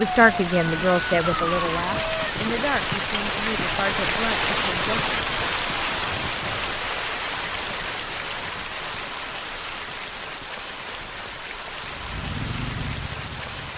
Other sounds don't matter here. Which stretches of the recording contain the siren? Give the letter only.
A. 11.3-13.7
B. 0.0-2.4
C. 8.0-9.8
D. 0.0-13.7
B.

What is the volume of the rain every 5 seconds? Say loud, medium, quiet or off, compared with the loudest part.
loud, loud, medium.